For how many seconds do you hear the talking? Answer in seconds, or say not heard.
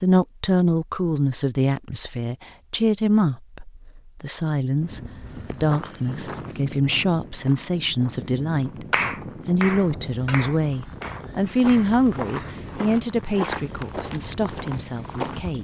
15 s.